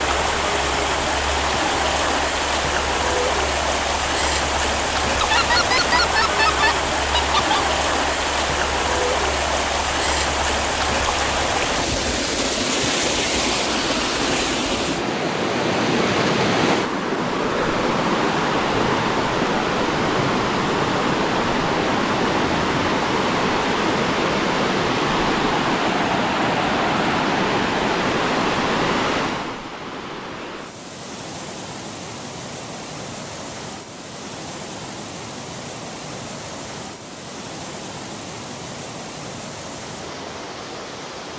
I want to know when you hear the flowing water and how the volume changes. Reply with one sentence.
You can hear the flowing water from 0.0 to 41.3 s, getting quieter.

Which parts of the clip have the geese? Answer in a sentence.
The geese can be heard from 5.2 to 7.6 s.